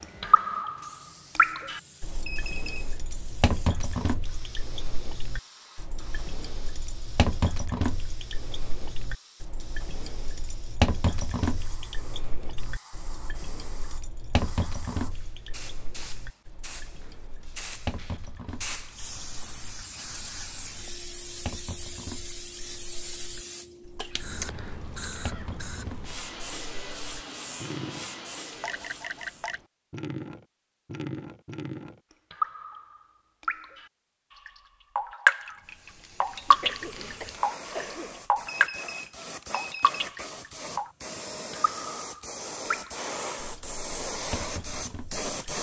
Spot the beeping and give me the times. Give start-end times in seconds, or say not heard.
2.2-3.0, 38.5-40.0.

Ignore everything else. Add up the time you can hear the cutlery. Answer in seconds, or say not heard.
not heard.